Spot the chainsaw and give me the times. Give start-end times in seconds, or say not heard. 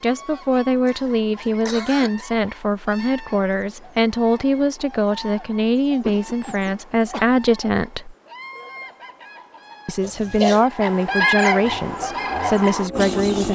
11.6-13.4.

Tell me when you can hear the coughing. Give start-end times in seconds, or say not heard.
0.8-2.2, 6.0-7.2, 10.0-10.7.